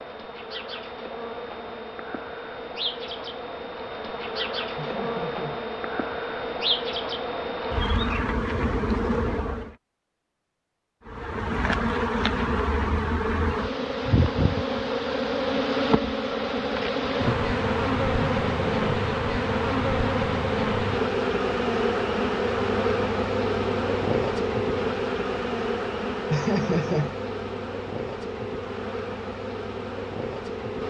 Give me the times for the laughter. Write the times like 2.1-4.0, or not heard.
4.8-5.6, 18.2-19.1, 26.3-27.1.